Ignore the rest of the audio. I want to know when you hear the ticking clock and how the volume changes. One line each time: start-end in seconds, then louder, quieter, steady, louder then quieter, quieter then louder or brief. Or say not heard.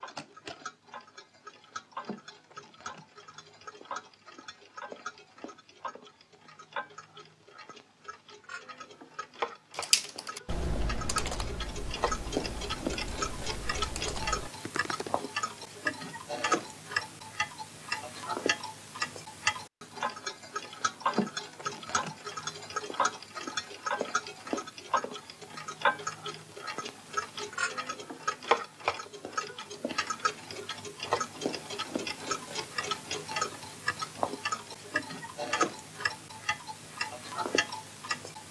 0.0-38.4 louder.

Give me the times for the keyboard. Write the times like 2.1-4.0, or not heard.
9.7-15.1.